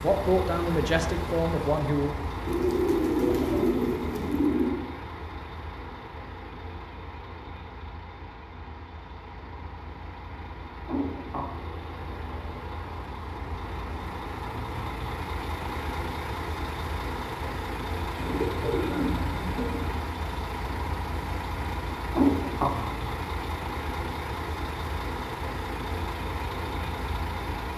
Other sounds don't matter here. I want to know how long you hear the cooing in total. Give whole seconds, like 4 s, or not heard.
4 s.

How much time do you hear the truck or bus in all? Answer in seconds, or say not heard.
28 s.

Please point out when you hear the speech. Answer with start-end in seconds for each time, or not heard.
0.0-2.1.